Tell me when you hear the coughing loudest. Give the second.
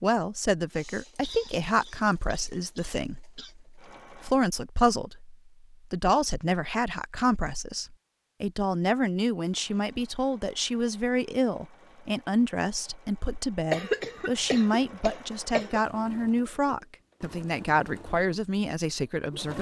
14 s.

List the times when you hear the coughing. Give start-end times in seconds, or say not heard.
1.2-3.5, 13.7-15.8.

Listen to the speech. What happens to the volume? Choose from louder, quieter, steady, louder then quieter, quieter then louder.
steady.